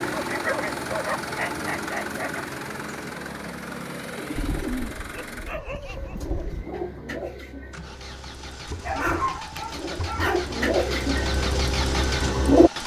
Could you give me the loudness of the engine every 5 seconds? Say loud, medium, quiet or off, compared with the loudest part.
loud, medium, loud.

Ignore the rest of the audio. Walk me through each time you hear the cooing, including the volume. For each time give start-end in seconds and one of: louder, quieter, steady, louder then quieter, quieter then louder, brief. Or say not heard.
4.2-12.7 louder.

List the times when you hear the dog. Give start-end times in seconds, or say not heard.
0.1-2.5, 4.3-6.7, 8.7-10.4.